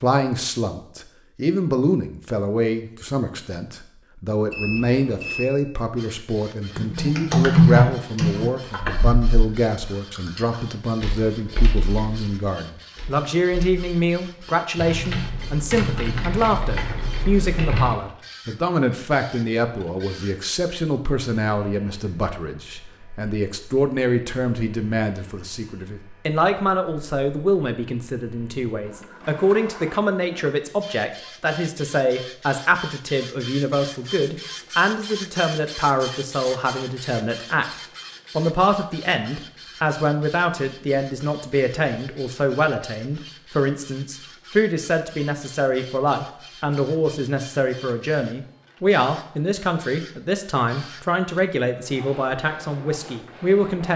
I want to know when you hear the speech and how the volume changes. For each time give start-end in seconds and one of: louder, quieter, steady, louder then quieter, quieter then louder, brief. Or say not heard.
0.0-37.6 steady
38.4-53.9 steady.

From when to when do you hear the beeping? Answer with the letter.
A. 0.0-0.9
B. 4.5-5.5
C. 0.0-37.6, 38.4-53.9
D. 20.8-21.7
B.